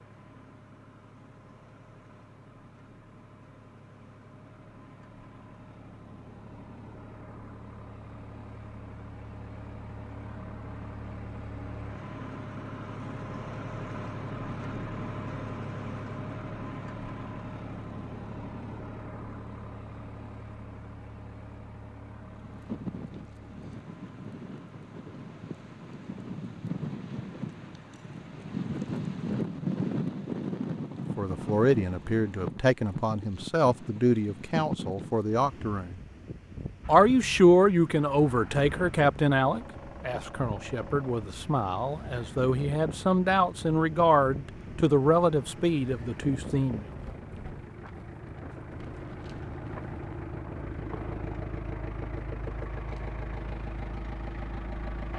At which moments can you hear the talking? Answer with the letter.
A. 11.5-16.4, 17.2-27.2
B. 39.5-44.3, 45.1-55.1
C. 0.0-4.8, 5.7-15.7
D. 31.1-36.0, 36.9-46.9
D.